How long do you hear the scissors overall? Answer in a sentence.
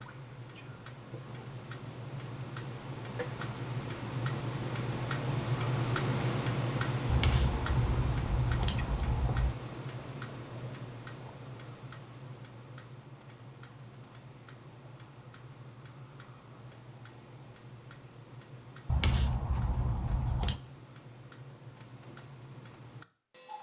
You can hear the scissors for 4 seconds altogether.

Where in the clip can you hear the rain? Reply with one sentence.
The rain can't be heard in this clip.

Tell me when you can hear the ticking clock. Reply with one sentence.
The ticking clock can be heard from 0.0 to 23.5 s.